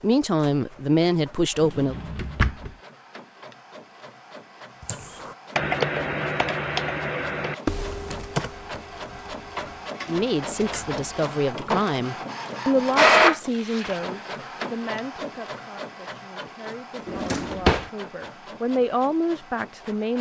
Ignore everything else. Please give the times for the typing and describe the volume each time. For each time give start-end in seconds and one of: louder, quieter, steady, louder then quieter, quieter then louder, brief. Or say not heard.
4.8-9.9 quieter.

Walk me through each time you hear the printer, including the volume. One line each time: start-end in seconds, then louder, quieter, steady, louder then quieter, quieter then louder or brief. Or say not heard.
0.0-20.1 louder then quieter.